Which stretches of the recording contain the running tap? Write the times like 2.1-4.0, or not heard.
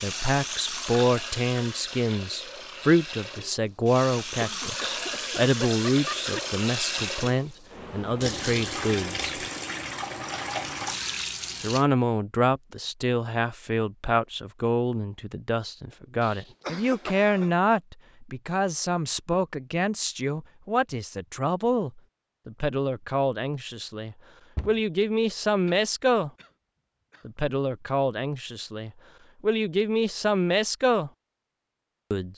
0.0-11.8.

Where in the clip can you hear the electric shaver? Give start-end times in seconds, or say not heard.
not heard.